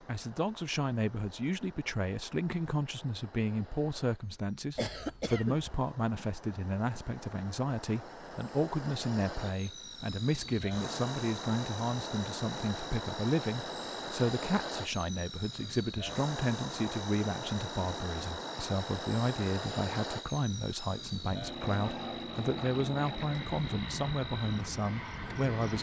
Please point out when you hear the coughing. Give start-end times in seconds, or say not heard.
4.8-5.7.